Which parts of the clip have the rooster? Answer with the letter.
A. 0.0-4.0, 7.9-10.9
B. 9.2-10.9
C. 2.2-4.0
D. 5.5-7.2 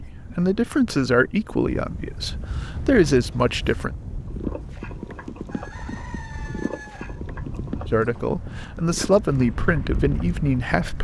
D.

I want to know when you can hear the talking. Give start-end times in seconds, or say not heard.
0.0-4.0, 7.9-10.9.